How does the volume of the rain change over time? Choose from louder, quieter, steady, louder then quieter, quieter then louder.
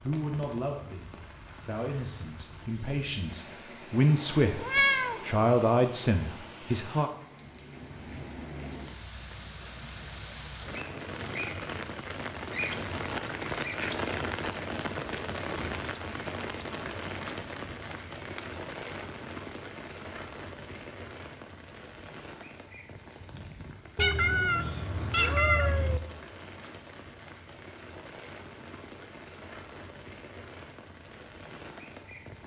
louder then quieter.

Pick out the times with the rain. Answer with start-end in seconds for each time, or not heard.
0.0-32.4.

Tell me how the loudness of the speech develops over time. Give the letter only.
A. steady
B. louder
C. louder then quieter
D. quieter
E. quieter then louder
B.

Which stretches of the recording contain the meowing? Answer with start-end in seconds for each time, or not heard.
4.0-5.5, 23.9-26.0.